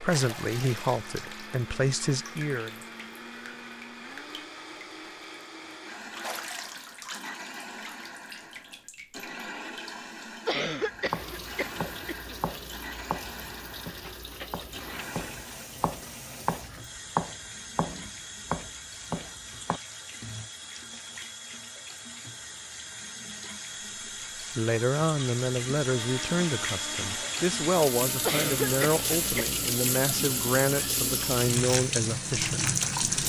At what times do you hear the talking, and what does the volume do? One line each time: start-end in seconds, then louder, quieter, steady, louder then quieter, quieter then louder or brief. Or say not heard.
0.0-2.8 brief
24.6-33.0 steady.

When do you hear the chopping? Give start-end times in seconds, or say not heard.
10.9-20.5.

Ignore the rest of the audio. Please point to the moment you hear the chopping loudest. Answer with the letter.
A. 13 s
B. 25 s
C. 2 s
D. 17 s
D.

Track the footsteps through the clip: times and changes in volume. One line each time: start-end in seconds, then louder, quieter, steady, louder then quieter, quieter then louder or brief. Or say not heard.
not heard.